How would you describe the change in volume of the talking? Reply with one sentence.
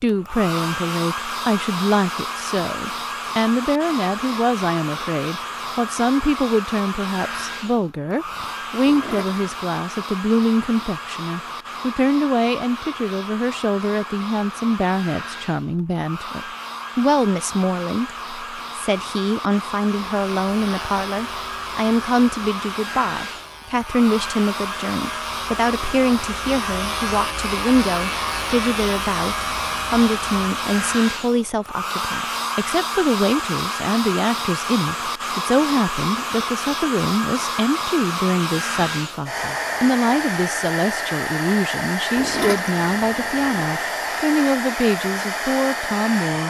The volume of the talking stays about the same.